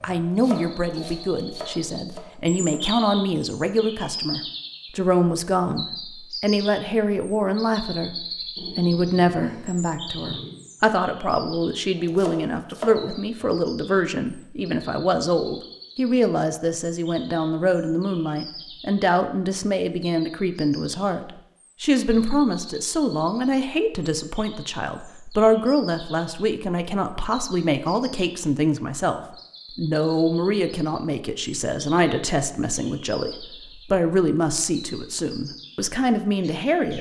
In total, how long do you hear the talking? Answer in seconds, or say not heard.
37 s.